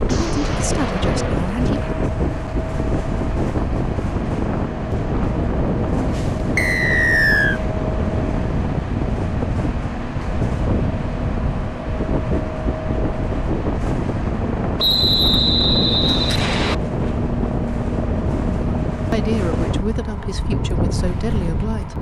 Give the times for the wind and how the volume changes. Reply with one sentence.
The wind can be heard from 0.0 to 21.9 s, at a steady volume.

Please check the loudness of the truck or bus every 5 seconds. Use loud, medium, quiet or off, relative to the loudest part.
loud, loud, loud, loud, medium.